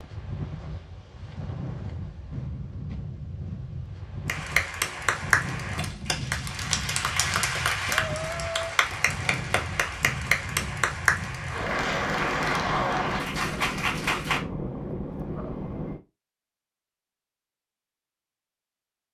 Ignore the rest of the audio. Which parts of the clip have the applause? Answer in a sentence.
The applause can be heard from 4.2 to 14.4 s.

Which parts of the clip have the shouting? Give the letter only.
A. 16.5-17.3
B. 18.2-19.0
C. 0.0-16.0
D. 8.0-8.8
D.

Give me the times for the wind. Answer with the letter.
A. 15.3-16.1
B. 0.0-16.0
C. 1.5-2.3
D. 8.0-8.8
B.